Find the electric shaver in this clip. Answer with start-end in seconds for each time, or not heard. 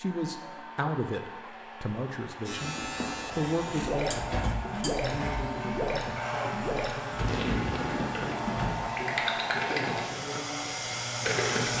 2.5-11.7.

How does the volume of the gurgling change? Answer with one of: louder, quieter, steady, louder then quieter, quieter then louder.
steady.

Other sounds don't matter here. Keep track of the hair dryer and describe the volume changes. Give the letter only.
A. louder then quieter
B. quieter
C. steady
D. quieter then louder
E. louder
E.